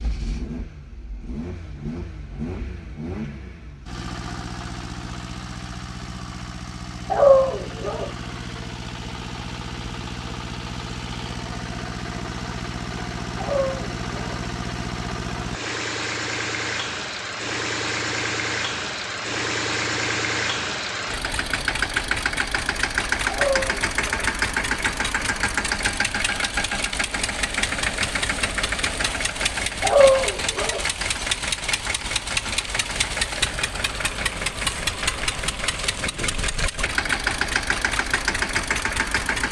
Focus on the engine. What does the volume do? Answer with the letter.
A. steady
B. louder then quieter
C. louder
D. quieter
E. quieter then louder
C.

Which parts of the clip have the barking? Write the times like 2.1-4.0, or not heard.
7.1-8.1, 13.3-14.4, 23.3-24.3, 29.8-30.9.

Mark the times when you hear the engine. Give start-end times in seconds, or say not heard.
0.0-39.4.